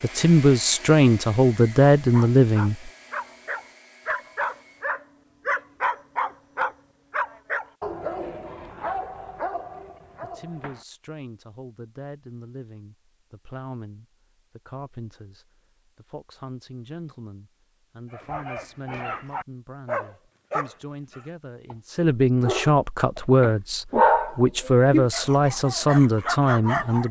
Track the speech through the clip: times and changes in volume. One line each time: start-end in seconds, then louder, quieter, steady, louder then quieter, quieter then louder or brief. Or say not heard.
0.0-2.9 brief
10.2-27.0 louder.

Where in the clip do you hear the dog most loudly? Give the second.
24 s.